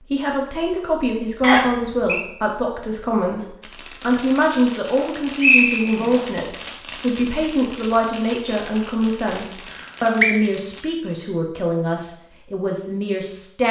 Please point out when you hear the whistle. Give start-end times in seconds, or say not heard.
1.4-2.2, 5.4-6.2, 9.6-10.3.